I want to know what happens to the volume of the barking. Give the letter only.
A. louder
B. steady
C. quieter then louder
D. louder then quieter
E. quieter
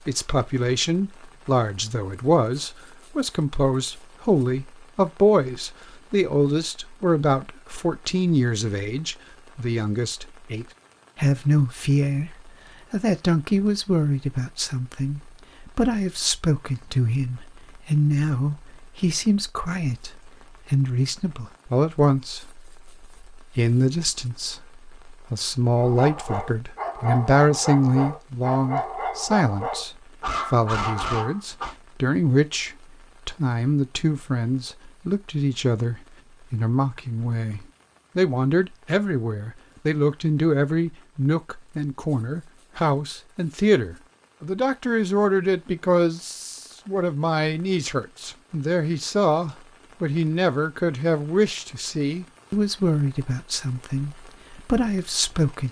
B.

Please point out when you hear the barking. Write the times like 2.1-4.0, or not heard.
25.8-31.8.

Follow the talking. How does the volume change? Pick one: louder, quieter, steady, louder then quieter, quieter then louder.
steady.